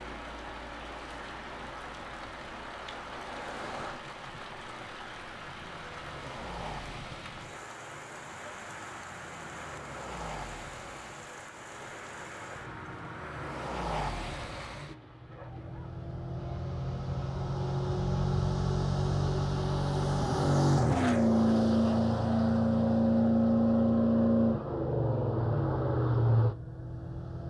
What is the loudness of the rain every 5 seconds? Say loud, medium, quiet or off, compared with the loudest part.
loud, loud, loud, quiet, off, off.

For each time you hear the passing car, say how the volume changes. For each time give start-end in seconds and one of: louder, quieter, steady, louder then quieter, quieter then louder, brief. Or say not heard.
0.1-27.4 louder.